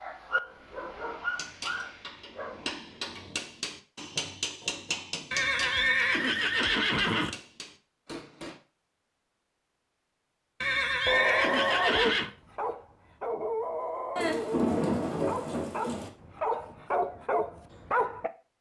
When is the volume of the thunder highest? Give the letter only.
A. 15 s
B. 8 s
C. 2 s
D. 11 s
A.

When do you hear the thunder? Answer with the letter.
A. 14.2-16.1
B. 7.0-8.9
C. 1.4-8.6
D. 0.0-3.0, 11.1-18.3
A.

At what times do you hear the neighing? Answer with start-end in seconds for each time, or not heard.
5.3-7.3, 10.6-12.3.